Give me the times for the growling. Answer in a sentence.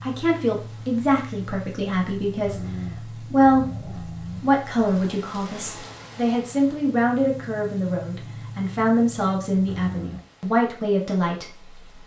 The growling can be heard from 2.5 to 4.4 s and from 9.7 to 10.2 s.